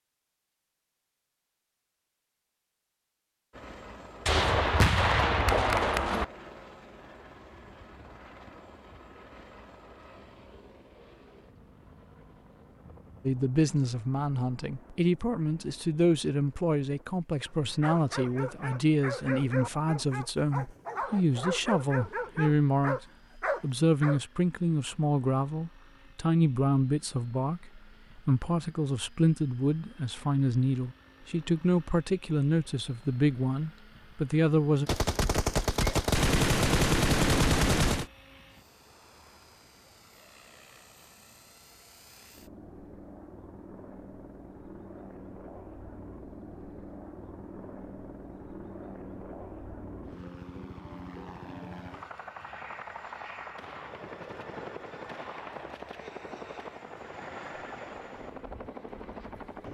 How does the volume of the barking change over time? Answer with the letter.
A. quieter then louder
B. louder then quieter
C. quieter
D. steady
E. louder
E.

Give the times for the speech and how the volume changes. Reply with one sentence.
You can hear the speech from 13.2 to 34.9 s, at a steady volume.